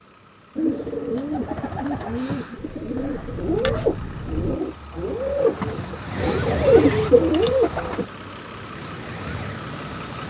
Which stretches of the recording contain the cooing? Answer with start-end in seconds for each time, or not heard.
0.6-8.1.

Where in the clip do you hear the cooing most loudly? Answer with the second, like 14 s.
7 s.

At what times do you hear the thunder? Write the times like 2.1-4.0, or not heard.
2.5-4.6.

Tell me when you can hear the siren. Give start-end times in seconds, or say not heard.
5.5-7.2, 8.7-10.2.